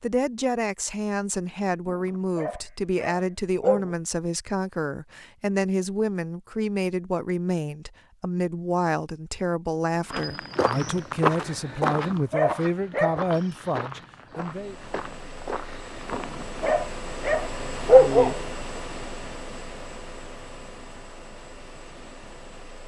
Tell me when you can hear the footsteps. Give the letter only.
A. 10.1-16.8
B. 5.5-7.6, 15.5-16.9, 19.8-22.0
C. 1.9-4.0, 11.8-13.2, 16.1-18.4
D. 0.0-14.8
A.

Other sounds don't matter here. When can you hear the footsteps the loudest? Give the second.
11 s.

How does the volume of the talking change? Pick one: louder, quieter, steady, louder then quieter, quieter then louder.
steady.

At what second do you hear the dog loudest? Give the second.
18 s.